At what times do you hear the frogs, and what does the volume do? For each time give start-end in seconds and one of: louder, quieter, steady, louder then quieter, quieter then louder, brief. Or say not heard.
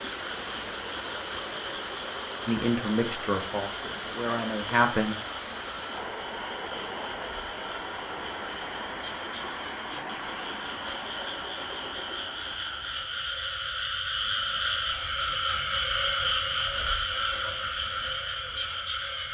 0.0-19.2 louder.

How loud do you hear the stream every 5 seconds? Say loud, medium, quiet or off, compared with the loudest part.
loud, loud, loud, off.